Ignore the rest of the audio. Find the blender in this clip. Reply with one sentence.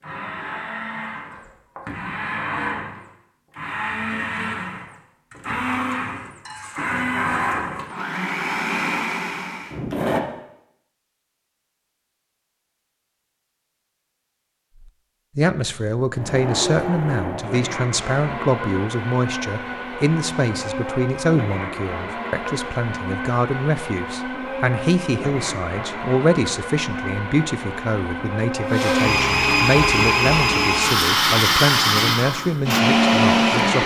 The blender can be heard from 0.0 to 10.2 s and from 16.1 to 33.8 s.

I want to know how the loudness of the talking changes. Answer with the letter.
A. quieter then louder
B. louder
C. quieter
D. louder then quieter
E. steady
E.